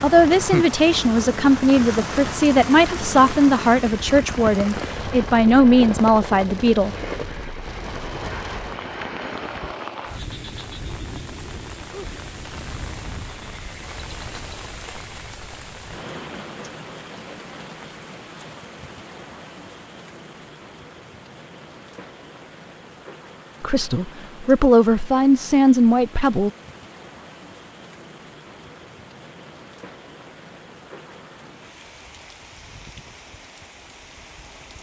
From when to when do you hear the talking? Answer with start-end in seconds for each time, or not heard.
0.0-7.0, 23.6-26.5.